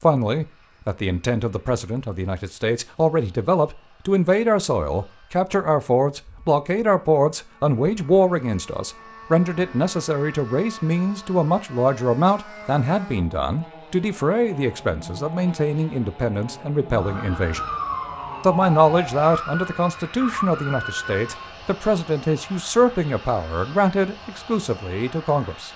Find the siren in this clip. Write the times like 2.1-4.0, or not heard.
16.9-21.6.